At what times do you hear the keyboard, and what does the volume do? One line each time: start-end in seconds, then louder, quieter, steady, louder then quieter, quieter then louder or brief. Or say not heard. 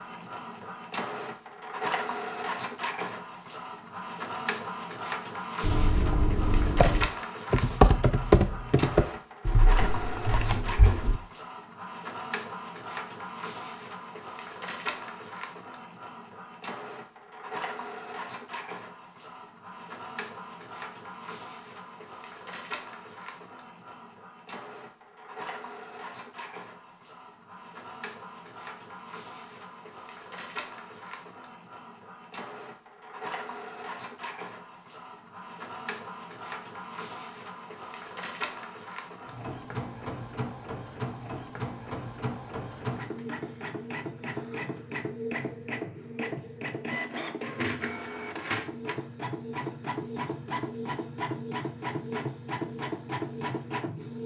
5.6-11.2 louder then quieter.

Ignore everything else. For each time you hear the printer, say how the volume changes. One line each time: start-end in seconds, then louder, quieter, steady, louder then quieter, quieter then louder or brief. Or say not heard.
0.0-54.2 quieter then louder.